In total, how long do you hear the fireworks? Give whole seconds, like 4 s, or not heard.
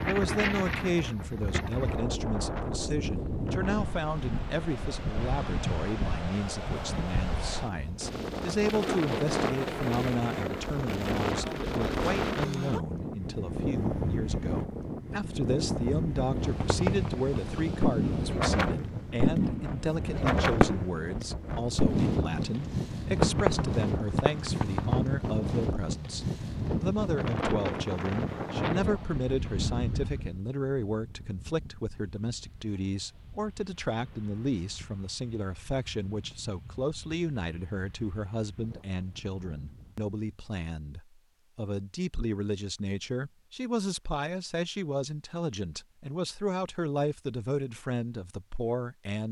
8 s.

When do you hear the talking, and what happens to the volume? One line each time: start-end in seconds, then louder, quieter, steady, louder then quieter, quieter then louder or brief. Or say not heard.
0.0-49.2 steady.